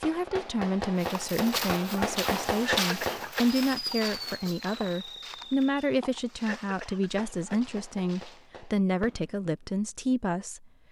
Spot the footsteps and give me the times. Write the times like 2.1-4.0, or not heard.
0.9-8.5.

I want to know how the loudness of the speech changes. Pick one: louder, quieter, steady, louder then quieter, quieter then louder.
steady.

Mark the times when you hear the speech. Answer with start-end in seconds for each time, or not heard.
0.0-10.7.